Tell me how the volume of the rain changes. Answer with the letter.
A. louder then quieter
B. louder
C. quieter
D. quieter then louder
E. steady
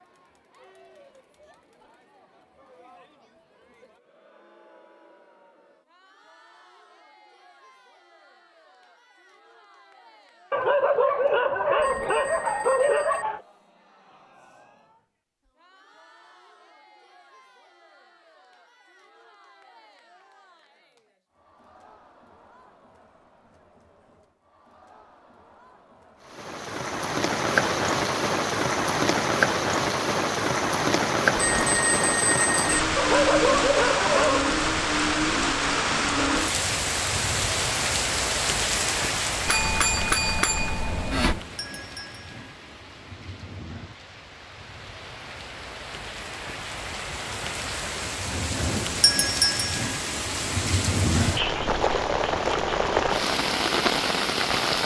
D.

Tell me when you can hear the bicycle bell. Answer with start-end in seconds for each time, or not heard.
11.8-13.2, 31.4-32.8, 39.5-41.4.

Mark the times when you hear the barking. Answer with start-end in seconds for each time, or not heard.
10.5-13.4, 33.0-34.5.